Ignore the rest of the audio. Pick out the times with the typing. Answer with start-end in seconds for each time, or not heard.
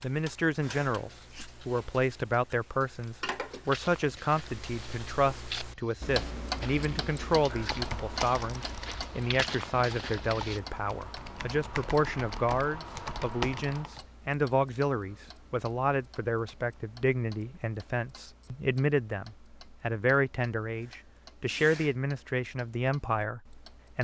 7.4-14.0.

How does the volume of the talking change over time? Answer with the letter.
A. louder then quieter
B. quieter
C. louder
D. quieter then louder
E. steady
E.